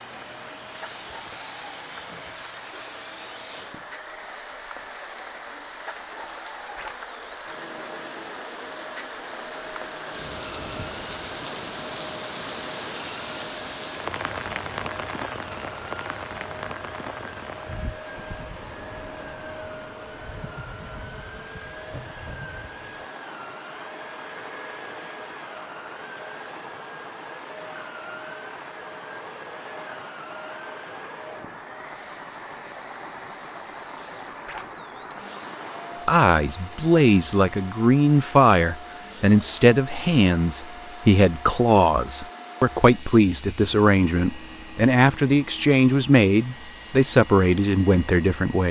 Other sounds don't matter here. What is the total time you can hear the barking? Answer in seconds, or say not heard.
not heard.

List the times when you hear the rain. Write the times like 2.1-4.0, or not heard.
0.0-36.1.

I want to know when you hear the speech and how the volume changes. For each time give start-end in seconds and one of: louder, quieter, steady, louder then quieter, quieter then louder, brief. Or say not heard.
36.0-48.6 steady.